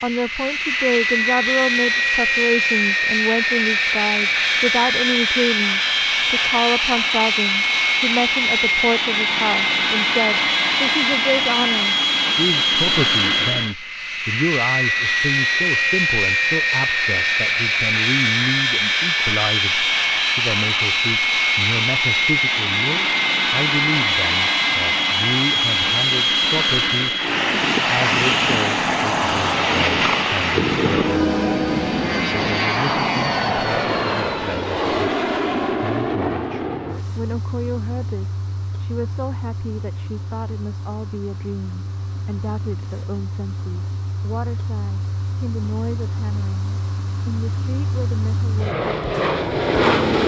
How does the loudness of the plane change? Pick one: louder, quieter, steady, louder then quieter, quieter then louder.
quieter.